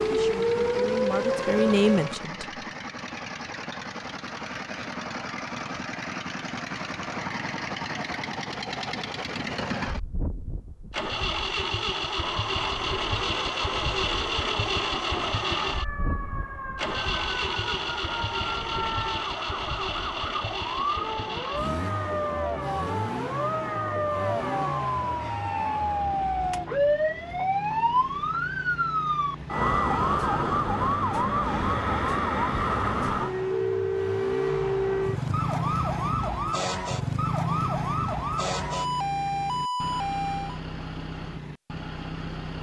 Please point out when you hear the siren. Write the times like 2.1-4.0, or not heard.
0.0-2.2, 12.2-40.6.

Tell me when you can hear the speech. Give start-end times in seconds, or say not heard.
0.1-2.6.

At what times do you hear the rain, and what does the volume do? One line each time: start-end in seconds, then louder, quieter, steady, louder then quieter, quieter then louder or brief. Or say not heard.
not heard.